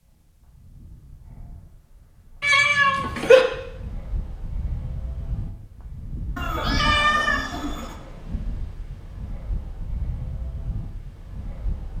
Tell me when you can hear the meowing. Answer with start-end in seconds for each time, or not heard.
2.4-3.5, 6.3-8.0.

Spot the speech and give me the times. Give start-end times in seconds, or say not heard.
not heard.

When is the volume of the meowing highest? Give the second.
3 s.